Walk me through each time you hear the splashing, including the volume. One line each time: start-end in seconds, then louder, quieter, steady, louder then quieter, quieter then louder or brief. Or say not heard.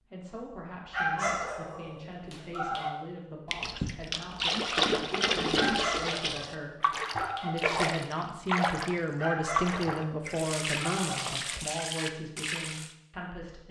3.5-12.9 quieter.